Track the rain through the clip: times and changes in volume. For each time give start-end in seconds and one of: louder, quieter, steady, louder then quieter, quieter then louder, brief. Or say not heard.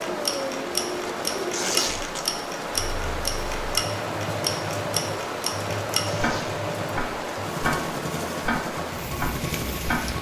0.0-10.1 steady.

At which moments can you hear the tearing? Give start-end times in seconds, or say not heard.
1.5-2.2, 6.0-6.6.